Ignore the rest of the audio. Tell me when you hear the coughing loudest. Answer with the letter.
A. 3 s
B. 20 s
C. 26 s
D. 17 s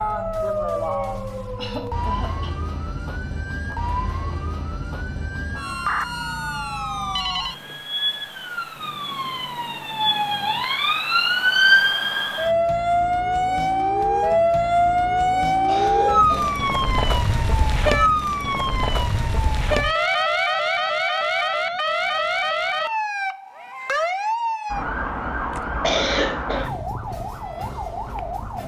C.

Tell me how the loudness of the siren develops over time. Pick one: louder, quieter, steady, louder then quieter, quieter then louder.
louder then quieter.